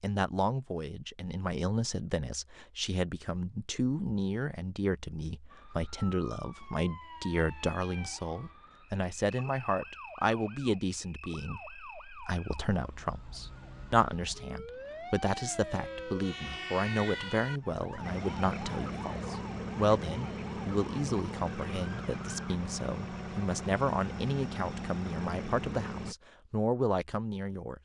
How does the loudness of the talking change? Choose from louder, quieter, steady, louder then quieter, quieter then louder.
steady.